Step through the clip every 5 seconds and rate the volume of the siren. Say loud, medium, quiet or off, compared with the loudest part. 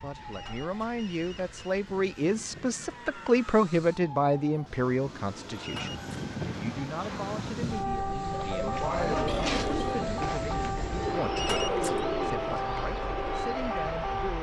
quiet, loud, loud.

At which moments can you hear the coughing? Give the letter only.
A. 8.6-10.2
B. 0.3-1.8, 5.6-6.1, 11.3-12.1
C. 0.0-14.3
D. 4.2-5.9
A.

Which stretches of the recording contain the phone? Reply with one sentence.
You can hear the phone from 0.3 to 1.8 s, from 5.6 to 6.1 s and from 11.3 to 12.1 s.